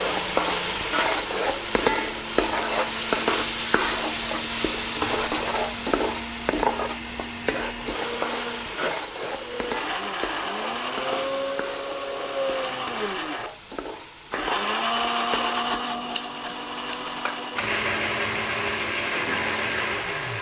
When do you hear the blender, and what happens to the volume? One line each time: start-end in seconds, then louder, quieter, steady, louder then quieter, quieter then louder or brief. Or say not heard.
0.0-20.3 louder.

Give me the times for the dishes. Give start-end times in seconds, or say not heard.
not heard.